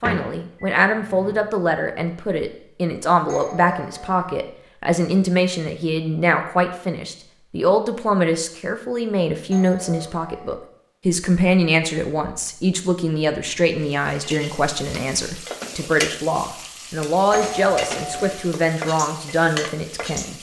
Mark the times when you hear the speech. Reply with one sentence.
The speech can be heard from 0.0 to 20.3 s.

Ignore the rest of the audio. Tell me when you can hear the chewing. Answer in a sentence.
The chewing can't be heard in this clip.